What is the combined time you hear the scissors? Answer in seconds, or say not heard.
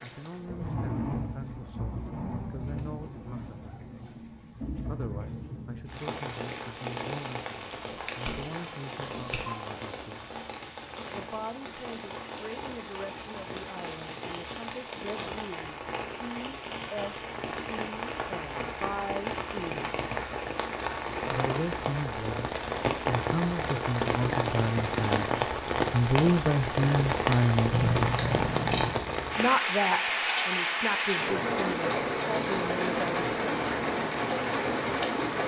5 s.